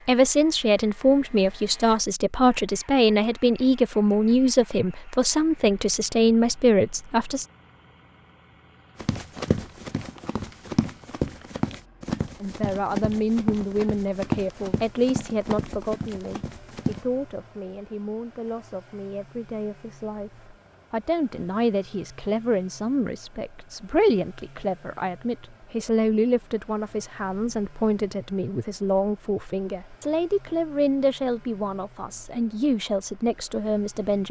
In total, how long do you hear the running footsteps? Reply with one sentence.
You can hear the running footsteps for 8 seconds altogether.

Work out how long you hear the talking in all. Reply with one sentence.
You can hear the talking for 29 seconds altogether.